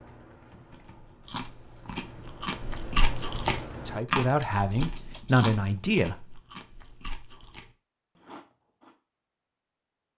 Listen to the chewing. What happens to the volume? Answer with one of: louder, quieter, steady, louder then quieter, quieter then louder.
louder then quieter.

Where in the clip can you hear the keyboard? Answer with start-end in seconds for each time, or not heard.
0.0-5.5.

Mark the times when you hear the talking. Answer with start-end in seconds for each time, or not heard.
3.9-6.4.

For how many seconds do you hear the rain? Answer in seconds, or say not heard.
not heard.